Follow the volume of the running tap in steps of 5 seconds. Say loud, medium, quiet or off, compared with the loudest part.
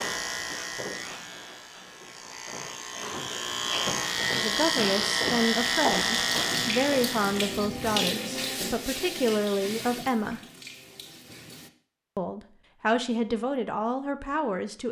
off, loud, quiet.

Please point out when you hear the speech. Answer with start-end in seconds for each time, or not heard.
4.3-10.4, 12.2-14.8.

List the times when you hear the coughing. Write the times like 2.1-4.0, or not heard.
not heard.